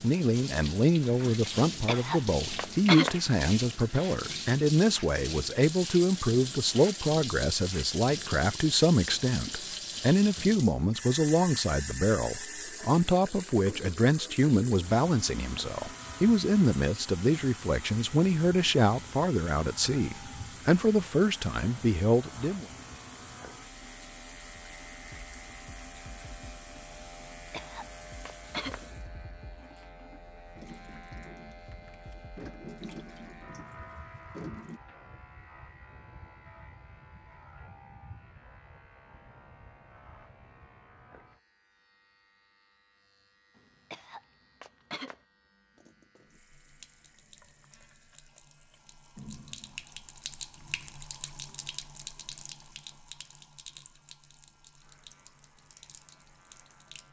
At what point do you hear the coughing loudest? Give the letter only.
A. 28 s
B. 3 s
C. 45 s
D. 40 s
B.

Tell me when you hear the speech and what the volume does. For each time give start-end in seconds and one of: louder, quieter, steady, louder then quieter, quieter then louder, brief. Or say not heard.
0.0-22.6 steady.